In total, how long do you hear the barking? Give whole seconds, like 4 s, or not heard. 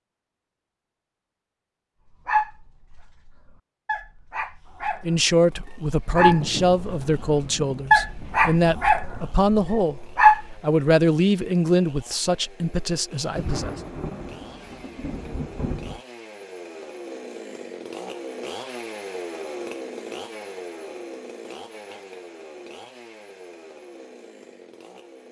8 s.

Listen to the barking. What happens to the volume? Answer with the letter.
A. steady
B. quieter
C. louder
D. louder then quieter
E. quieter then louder
D.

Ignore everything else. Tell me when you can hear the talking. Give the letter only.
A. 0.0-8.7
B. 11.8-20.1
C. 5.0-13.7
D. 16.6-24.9
C.